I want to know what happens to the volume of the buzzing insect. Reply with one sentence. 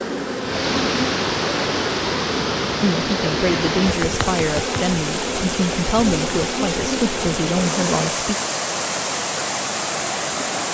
The loudness of the buzzing insect stays about the same.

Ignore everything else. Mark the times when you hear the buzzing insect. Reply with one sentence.
You can hear the buzzing insect from 0.0 to 8.1 s.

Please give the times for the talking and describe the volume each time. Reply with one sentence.
You can hear the talking from 2.8 to 8.3 s, at a steady volume.